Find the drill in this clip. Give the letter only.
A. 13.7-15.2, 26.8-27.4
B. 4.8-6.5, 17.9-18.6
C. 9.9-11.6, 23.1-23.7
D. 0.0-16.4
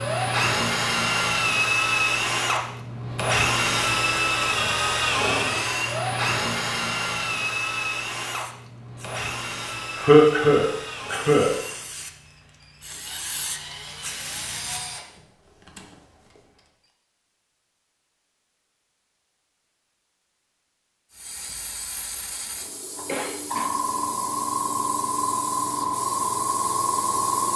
D.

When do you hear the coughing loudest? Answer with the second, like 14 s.
10 s.